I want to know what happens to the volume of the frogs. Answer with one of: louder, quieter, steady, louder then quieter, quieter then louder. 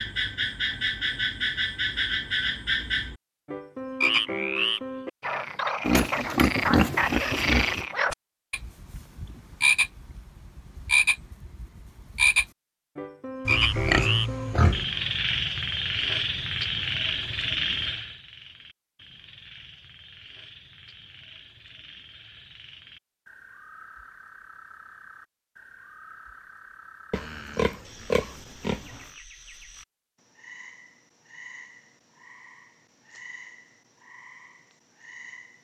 quieter.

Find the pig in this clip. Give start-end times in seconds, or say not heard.
5.8-7.8, 13.4-14.8, 27.1-28.9.